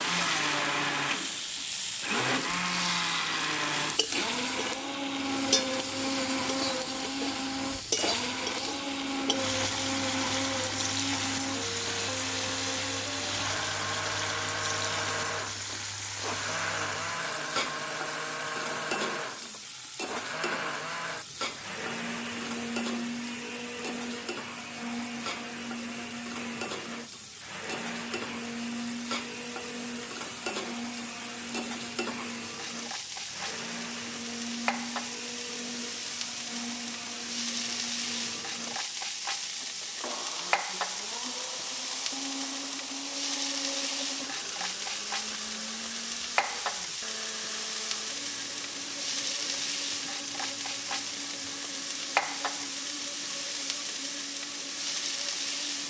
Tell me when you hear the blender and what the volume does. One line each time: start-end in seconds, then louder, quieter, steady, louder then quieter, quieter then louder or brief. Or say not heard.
0.0-55.8 quieter.